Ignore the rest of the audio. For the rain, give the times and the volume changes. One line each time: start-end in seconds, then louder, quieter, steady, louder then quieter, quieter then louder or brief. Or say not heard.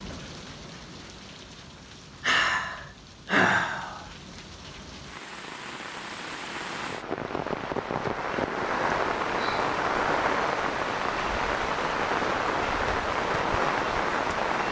0.0-14.6 louder.